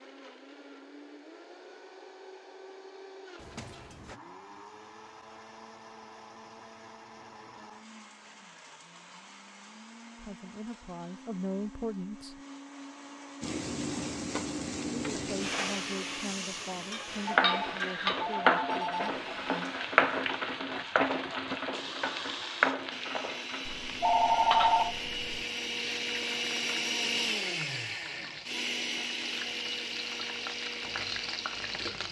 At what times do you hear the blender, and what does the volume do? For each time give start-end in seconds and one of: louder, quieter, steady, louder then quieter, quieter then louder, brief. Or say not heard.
0.0-32.0 louder.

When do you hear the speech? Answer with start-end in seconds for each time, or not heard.
10.2-12.3, 15.2-19.7.